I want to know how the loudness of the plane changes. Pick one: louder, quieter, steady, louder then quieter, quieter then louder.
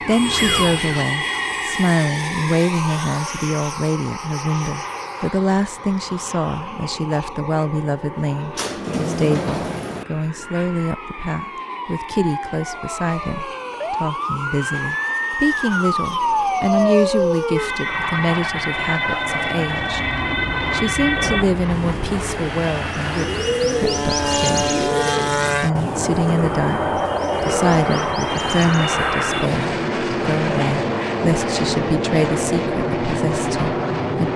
quieter then louder.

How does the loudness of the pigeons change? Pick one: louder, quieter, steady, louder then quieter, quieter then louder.
louder then quieter.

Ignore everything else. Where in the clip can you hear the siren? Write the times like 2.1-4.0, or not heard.
0.0-2.0, 10.4-21.4.